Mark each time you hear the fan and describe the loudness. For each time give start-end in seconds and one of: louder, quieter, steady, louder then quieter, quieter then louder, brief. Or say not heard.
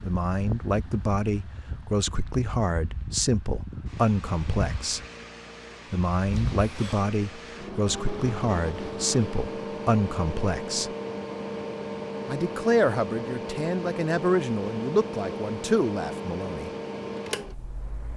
0.0-18.1 louder.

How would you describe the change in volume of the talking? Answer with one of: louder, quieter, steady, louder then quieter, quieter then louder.
steady.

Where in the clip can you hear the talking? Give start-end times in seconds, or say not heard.
0.1-5.0, 5.9-10.9, 12.2-16.7.